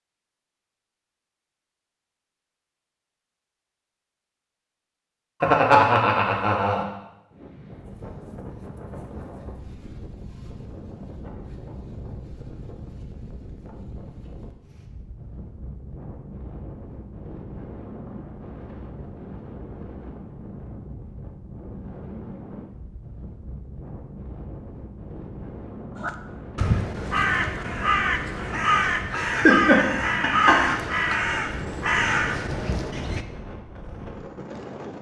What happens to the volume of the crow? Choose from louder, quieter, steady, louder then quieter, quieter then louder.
steady.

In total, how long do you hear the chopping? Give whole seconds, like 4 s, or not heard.
not heard.